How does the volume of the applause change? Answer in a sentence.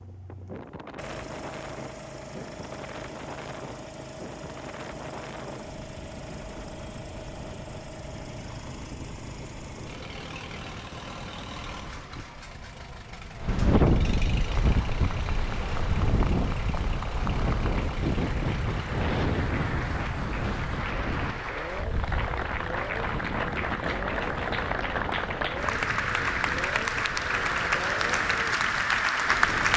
The volume of the applause goes up.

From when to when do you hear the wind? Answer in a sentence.
You can hear the wind from 0.0 to 29.7 s.